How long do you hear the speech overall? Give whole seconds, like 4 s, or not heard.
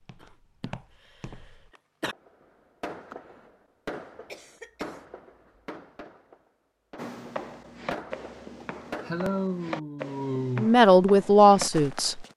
2 s.